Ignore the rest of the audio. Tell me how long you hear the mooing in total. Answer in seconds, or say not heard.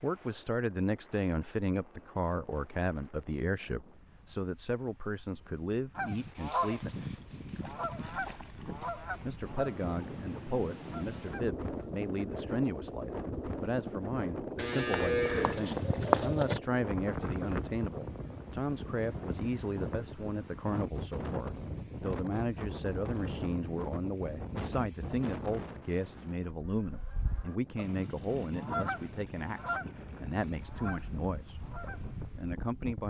2 s.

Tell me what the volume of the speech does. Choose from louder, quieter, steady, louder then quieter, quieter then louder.
steady.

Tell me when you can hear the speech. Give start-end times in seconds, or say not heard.
0.0-6.9, 9.2-33.0.